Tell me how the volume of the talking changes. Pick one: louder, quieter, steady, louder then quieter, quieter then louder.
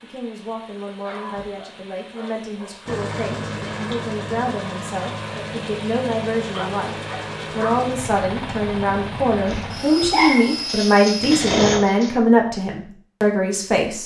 louder.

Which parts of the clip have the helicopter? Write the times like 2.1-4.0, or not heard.
2.9-11.4.